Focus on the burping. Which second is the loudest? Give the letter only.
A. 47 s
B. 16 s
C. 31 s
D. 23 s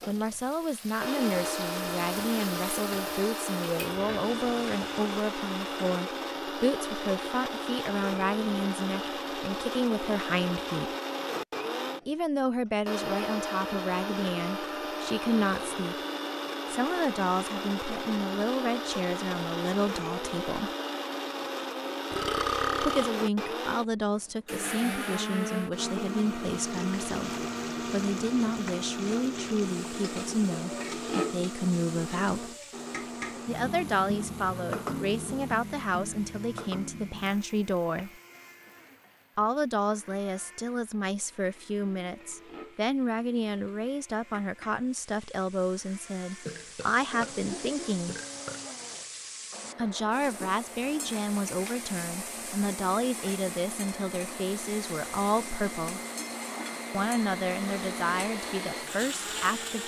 D.